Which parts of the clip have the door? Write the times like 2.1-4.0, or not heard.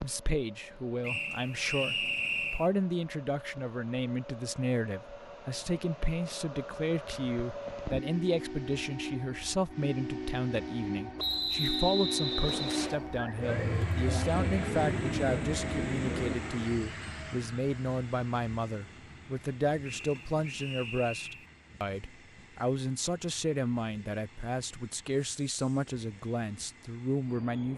not heard.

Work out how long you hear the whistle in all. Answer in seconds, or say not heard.
5 s.